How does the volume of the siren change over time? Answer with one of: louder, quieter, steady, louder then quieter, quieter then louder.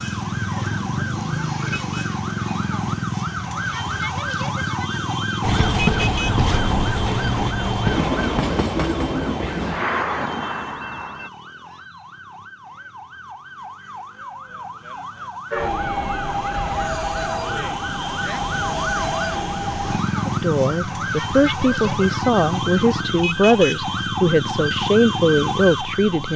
quieter then louder.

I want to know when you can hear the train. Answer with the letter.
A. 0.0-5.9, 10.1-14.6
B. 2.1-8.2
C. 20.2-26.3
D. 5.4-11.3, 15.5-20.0
D.